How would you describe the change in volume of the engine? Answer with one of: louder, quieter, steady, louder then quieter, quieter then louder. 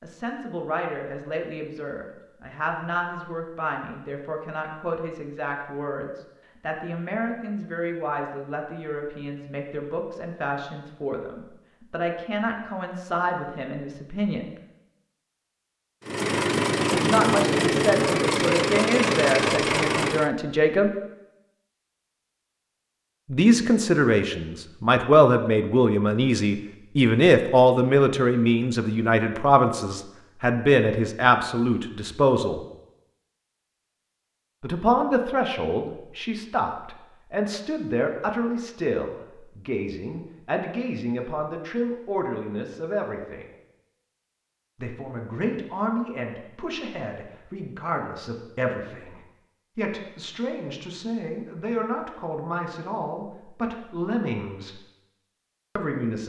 steady.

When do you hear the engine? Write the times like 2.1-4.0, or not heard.
16.1-20.3.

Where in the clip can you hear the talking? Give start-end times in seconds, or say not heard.
0.0-14.6, 16.9-20.9, 23.3-32.6, 34.6-43.5, 44.8-54.8, 55.8-56.2.